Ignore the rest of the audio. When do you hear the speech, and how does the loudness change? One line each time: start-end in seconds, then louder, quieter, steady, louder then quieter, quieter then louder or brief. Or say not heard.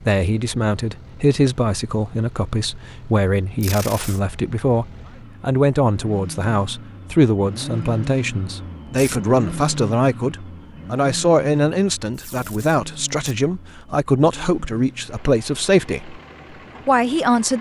0.0-16.2 steady
16.9-17.5 brief.